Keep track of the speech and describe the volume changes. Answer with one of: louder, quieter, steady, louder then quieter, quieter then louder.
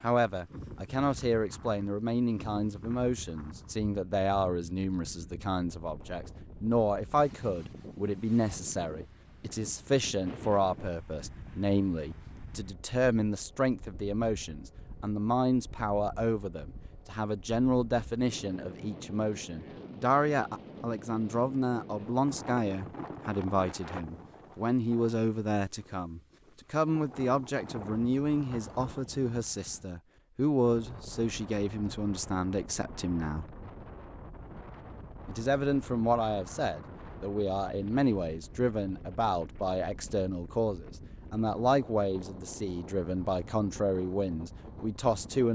steady.